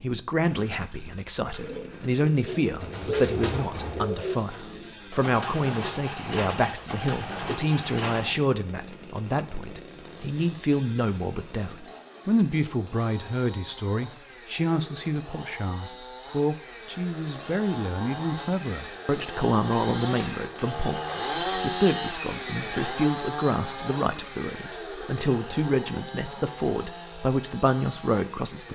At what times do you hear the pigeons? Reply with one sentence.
You can hear the pigeons from 1.4 to 8.3 s.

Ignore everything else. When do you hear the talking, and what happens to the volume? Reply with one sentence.
You can hear the talking from 0.0 to 28.7 s, at a steady volume.